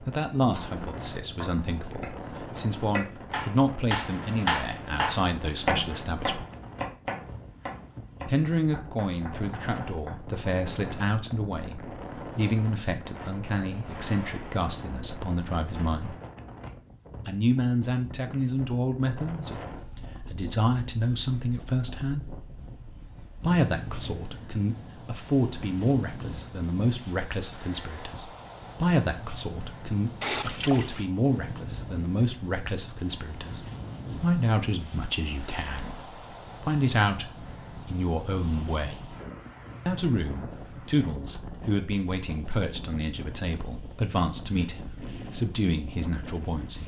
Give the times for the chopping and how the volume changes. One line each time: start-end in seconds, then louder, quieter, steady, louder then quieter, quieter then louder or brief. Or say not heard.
0.1-10.3 louder then quieter.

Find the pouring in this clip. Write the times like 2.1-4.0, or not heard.
30.2-31.1.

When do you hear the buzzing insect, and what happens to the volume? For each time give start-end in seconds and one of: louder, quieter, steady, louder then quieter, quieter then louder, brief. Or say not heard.
not heard.